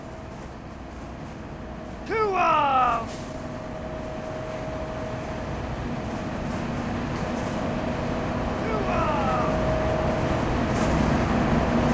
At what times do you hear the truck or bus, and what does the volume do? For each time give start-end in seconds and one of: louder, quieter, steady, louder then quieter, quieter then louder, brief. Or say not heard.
0.0-11.9 louder.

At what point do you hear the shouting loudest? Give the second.
3 s.